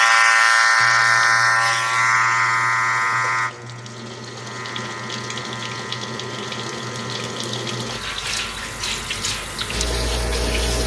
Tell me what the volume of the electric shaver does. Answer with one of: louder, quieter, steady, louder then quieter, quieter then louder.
quieter.